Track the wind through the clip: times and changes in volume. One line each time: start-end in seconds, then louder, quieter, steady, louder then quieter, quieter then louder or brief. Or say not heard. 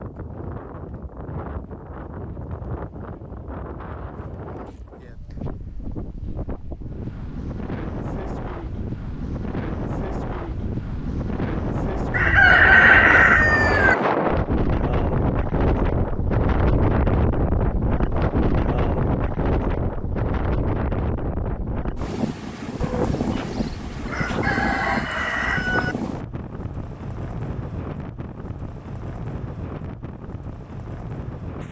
0.0-31.6 louder then quieter.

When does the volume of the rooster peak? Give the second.
13 s.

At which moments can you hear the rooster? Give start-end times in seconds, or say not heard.
12.1-13.9, 22.8-25.9.